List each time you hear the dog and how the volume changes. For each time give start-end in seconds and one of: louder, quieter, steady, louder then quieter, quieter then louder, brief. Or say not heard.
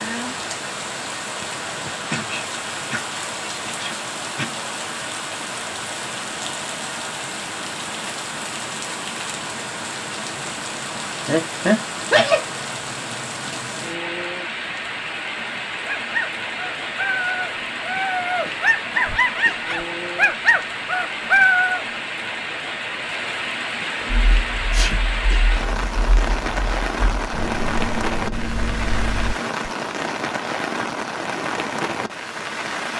15.8-21.9 louder.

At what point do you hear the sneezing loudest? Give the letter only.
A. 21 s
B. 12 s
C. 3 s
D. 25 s
B.